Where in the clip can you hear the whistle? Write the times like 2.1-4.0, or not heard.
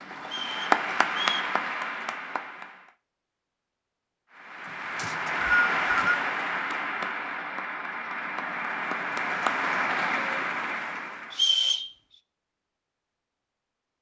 0.3-1.5, 5.0-6.2, 11.3-11.9.